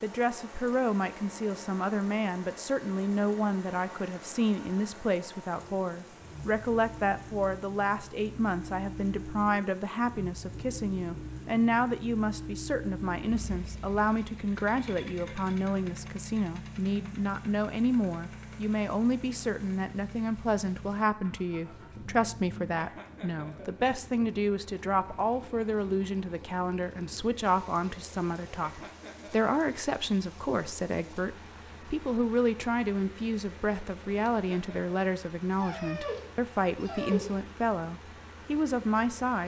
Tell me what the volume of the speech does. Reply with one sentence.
The loudness of the speech stays about the same.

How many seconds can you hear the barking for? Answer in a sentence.
You can hear the barking for 2 seconds altogether.